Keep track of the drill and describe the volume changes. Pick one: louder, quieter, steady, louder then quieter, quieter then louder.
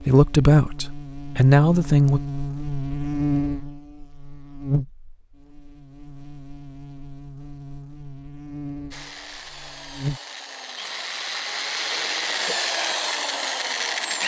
louder.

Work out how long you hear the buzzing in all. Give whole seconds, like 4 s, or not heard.
10 s.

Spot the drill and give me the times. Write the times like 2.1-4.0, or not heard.
8.9-14.2.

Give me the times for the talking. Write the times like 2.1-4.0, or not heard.
0.0-2.2.